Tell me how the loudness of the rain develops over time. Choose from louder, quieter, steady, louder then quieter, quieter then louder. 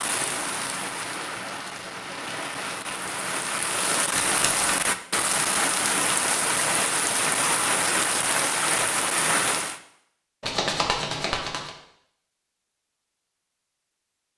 louder.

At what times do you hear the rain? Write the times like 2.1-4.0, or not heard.
0.0-9.8.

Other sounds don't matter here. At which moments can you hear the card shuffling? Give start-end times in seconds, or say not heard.
4.1-4.7, 10.4-11.8.